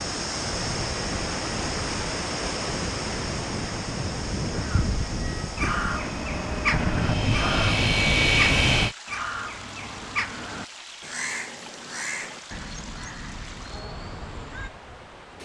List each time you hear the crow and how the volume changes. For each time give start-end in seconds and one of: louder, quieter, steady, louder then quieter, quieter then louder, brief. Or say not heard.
4.5-14.7 quieter.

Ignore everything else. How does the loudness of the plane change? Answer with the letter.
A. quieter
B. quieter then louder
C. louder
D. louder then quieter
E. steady
C.